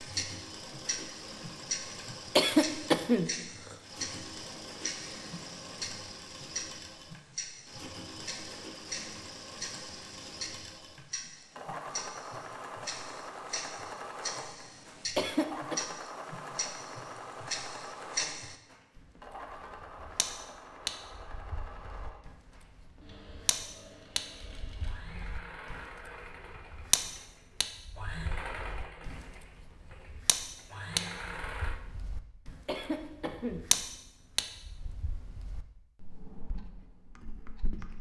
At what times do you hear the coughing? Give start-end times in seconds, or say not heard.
2.4-3.8, 15.2-15.8, 32.6-33.6.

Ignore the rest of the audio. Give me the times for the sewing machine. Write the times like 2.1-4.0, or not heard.
0.0-31.8.